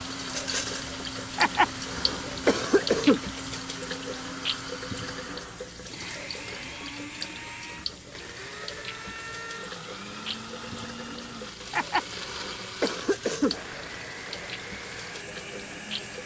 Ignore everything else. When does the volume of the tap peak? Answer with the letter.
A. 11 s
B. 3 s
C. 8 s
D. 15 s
B.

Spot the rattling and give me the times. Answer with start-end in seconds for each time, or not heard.
0.3-0.9, 13.1-13.7.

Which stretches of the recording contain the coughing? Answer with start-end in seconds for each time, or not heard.
1.4-3.2, 11.7-13.6.